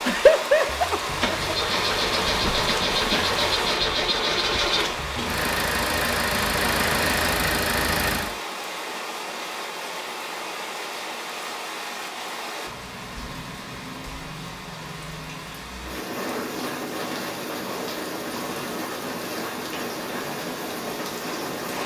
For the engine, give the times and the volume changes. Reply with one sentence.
You can hear the engine from 0.0 to 8.3 s, at a steady volume.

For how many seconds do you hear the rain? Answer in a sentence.
You can hear the rain for 22 seconds altogether.